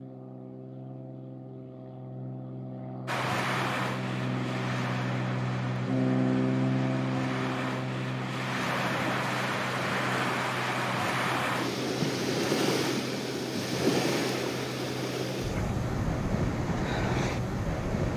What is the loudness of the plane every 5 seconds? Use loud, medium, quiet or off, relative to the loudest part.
medium, loud, medium, medium.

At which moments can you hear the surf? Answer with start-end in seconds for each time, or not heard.
3.0-18.1.